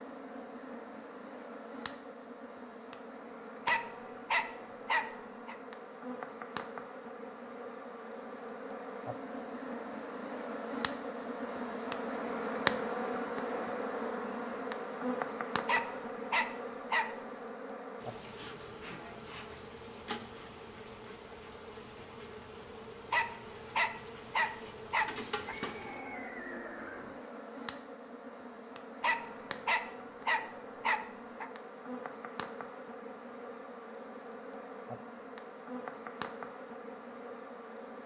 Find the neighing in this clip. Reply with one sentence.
The neighing can be heard from 25.4 to 27.2 s.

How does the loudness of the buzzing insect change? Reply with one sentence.
The loudness of the buzzing insect goes up, then down.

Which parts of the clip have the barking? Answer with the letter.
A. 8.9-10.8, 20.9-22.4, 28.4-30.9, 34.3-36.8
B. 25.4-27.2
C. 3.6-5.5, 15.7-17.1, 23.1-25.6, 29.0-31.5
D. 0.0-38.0
C.